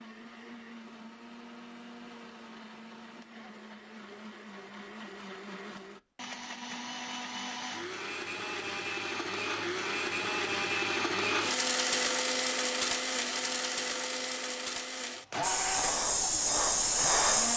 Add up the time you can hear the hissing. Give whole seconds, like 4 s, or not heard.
2 s.